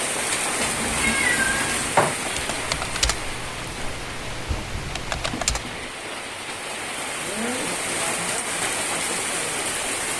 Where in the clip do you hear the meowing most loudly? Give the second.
2 s.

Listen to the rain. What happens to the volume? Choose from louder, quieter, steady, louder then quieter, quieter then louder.
quieter then louder.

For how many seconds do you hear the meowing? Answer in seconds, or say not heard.
2 s.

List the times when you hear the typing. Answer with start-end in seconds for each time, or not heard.
2.2-5.9.